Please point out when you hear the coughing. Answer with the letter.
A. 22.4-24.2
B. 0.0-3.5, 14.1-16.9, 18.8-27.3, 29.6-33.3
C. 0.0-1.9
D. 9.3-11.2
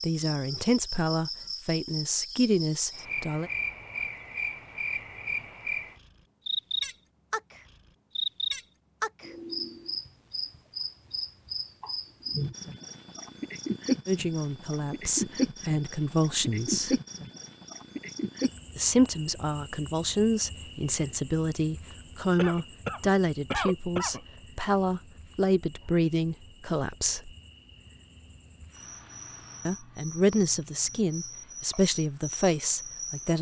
A.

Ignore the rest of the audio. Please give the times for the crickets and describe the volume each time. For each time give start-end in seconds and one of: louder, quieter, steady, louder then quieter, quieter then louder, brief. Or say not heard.
0.0-33.3 quieter then louder.